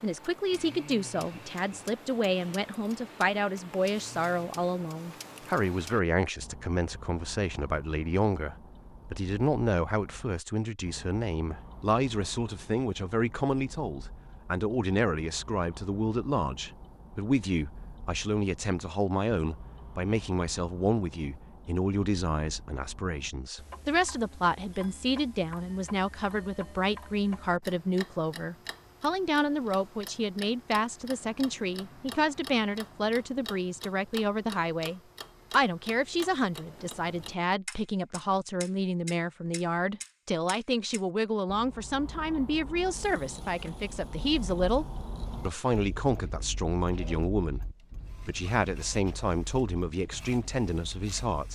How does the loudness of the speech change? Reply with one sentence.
The volume of the speech stays about the same.